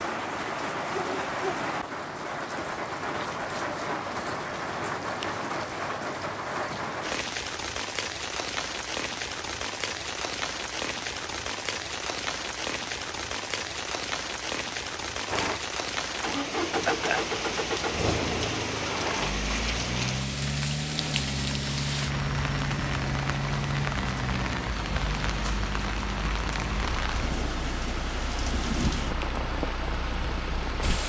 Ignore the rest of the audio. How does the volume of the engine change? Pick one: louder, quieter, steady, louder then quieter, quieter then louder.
quieter.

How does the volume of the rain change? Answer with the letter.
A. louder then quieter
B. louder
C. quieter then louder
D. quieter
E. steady
E.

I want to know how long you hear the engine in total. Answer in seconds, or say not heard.
16 s.